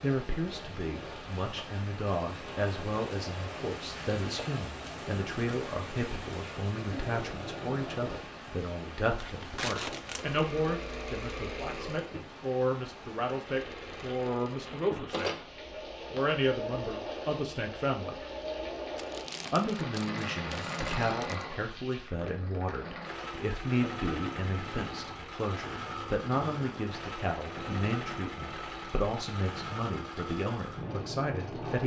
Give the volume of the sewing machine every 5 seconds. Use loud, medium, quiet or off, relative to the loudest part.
medium, loud, loud, loud, loud, loud, loud.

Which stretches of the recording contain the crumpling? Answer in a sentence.
You can hear the crumpling from 9.2 to 10.4 s and from 18.9 to 21.4 s.